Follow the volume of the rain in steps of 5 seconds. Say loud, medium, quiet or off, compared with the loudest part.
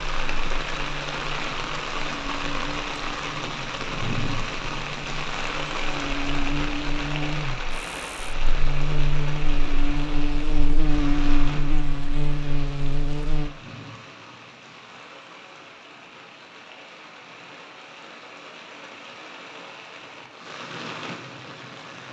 loud, loud, medium, quiet, medium.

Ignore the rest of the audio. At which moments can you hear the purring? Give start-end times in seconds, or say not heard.
not heard.